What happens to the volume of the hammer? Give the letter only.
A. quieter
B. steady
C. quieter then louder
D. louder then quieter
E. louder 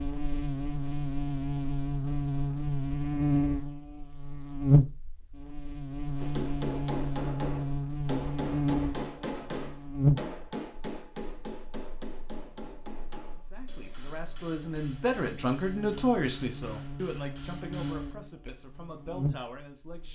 A.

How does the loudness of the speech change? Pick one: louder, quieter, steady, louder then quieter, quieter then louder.
louder then quieter.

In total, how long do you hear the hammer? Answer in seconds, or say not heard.
12 s.